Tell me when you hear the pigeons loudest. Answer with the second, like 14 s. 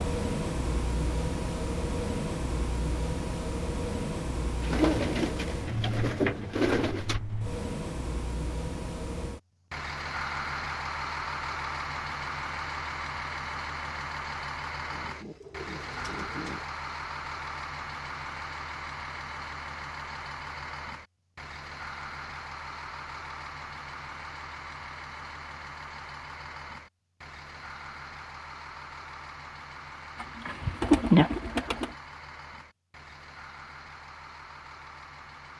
31 s.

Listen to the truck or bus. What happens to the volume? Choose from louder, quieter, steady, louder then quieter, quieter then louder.
quieter.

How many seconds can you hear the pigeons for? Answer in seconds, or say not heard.
6 s.